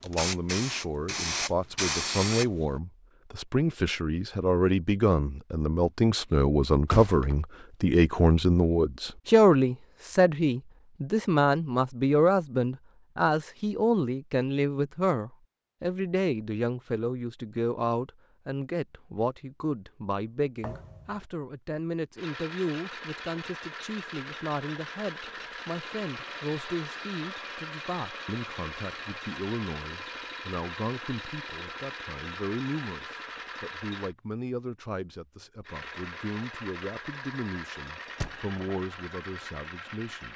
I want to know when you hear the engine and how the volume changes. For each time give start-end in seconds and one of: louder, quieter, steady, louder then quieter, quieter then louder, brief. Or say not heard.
22.1-34.1 steady
35.6-40.3 steady.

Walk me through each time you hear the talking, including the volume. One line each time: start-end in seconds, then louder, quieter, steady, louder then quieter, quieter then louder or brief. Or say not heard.
0.0-40.3 quieter.